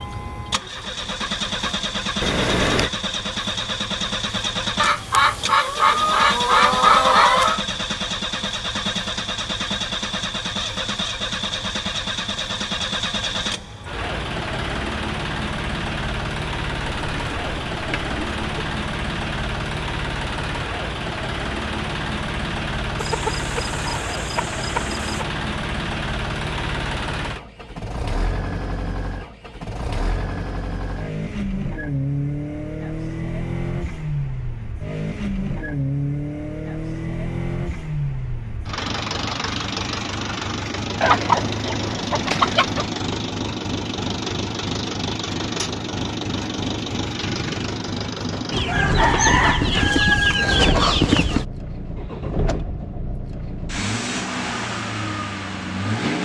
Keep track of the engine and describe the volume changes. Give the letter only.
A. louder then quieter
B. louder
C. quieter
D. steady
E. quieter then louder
D.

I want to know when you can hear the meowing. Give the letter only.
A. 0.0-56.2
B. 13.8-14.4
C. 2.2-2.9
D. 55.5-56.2
C.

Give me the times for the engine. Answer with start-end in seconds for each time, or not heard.
0.0-56.2.